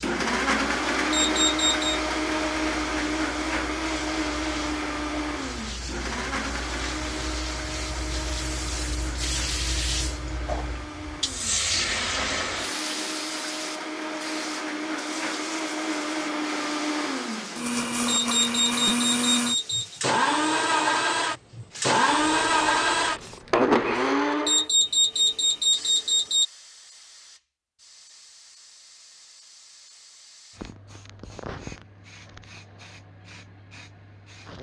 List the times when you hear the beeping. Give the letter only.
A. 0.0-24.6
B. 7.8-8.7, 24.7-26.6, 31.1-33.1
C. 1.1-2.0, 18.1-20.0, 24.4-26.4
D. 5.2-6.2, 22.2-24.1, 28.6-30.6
C.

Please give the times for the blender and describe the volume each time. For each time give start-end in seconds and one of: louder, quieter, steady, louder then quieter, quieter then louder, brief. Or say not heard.
0.0-24.6 quieter then louder.